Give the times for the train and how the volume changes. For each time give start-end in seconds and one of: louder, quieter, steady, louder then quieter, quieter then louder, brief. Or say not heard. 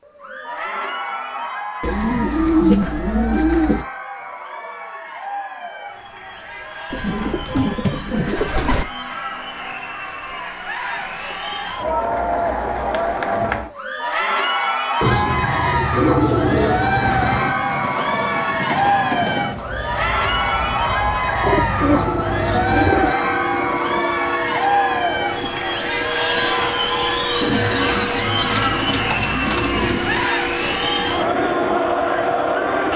17.0-32.9 steady.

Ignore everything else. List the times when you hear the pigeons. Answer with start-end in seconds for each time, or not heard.
1.8-3.9, 6.9-8.8, 15.0-17.5, 21.4-23.1, 27.4-30.2.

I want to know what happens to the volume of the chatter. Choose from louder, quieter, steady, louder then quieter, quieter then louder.
louder.